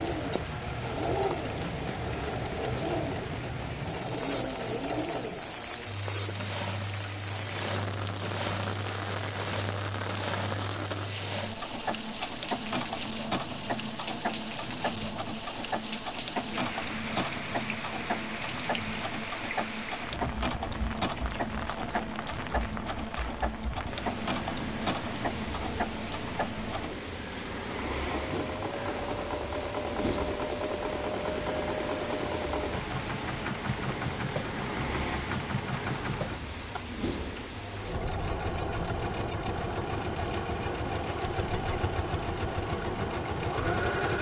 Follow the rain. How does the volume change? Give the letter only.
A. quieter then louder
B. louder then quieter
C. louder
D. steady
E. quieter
D.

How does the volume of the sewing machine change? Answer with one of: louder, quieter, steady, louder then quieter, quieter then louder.
steady.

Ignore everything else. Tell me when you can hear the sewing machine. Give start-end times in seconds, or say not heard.
0.0-44.1.